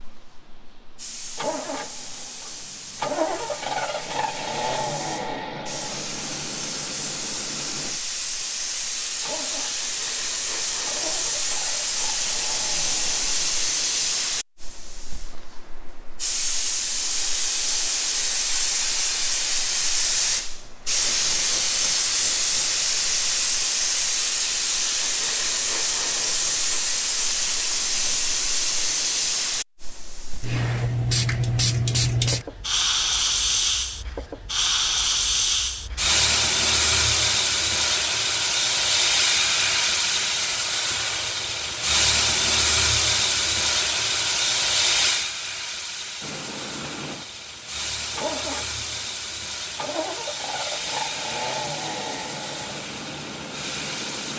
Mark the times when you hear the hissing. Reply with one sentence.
The hissing can be heard from 0.0 to 54.3 s.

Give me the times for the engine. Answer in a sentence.
You can hear the engine from 0.0 to 13.6 s and from 46.2 to 54.3 s.